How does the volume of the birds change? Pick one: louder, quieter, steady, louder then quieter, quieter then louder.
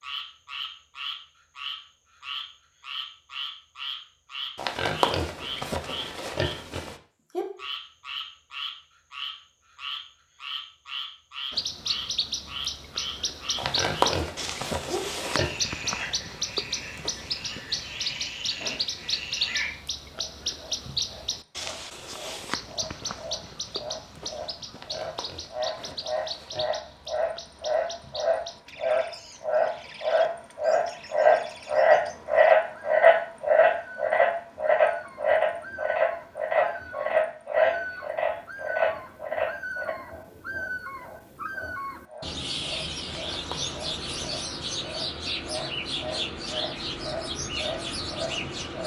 quieter then louder.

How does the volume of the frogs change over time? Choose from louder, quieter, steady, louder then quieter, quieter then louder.
louder then quieter.